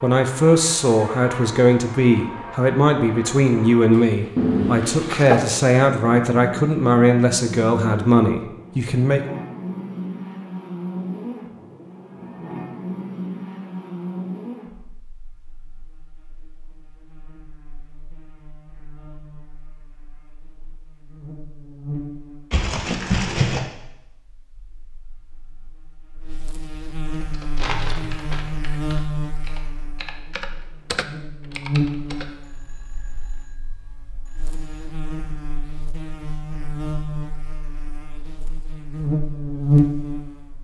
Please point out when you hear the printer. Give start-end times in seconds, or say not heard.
not heard.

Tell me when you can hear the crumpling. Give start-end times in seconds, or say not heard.
4.3-5.5, 22.5-23.6, 27.6-28.4.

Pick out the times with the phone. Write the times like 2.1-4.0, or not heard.
32.4-34.9.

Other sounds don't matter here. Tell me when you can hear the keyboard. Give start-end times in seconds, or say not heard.
27.1-32.3.